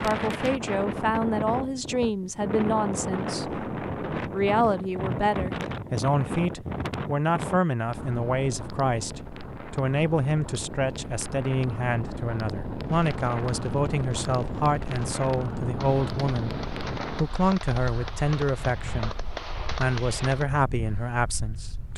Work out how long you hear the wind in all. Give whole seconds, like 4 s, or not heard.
22 s.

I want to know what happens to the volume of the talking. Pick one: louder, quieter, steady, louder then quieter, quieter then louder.
steady.